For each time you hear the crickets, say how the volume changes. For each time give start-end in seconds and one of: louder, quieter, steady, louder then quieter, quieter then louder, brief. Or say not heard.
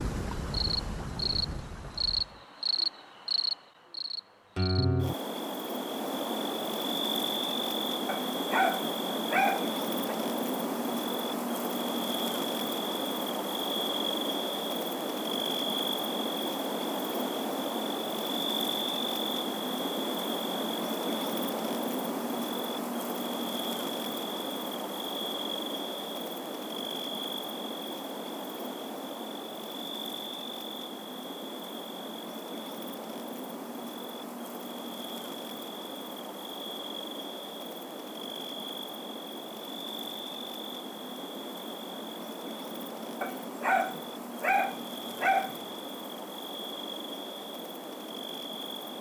0.0-48.9 quieter.